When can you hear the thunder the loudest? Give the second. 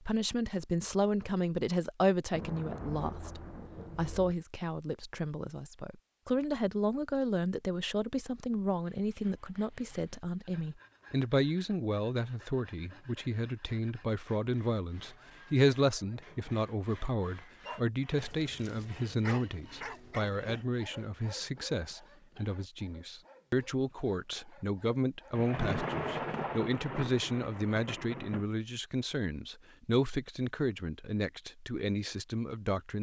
26 s.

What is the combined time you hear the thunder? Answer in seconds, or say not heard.
5 s.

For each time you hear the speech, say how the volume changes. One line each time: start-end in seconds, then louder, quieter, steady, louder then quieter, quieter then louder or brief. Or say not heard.
0.0-32.9 steady.